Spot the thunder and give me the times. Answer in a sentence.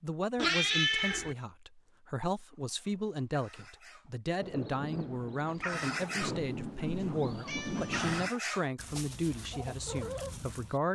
You can hear the thunder from 4.4 to 8.3 s.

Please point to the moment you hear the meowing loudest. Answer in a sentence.
The volume of the meowing peaks at 1 second.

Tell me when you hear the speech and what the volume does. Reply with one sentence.
You can hear the speech from 0.0 to 10.9 s, at a steady volume.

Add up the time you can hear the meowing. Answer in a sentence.
The meowing can be heard for 3 seconds in total.